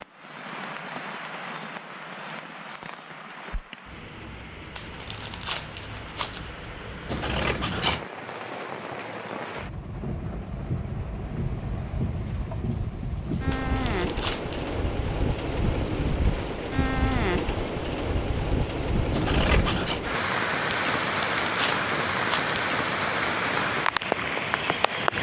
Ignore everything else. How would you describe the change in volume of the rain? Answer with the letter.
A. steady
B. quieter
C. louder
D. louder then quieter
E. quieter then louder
C.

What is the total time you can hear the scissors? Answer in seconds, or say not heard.
2 s.